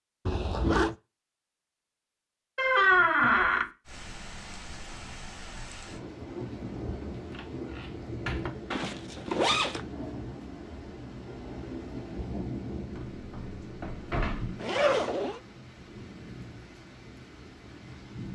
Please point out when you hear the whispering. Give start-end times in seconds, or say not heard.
not heard.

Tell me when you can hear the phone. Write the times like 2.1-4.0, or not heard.
not heard.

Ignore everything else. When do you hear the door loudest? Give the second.
3 s.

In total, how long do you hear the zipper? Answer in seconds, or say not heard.
3 s.